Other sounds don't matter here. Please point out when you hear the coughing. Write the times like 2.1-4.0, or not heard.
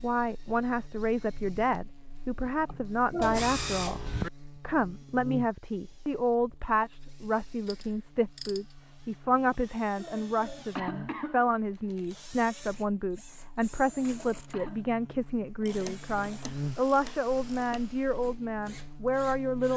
2.6-3.4, 9.9-11.5, 13.3-14.9.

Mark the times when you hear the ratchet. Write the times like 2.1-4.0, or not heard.
3.2-4.3, 7.7-8.6, 15.4-17.9.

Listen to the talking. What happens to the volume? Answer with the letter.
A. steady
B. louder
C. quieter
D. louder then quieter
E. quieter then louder
A.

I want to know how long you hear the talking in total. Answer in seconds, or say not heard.
20 s.